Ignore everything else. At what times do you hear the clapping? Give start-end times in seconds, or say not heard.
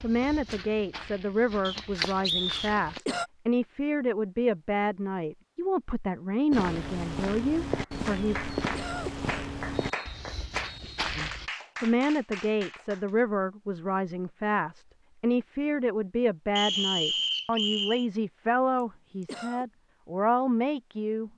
7.7-13.1.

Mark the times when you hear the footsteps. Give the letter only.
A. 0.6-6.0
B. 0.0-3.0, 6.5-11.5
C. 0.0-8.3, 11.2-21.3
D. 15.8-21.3
B.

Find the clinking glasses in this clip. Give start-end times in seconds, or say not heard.
not heard.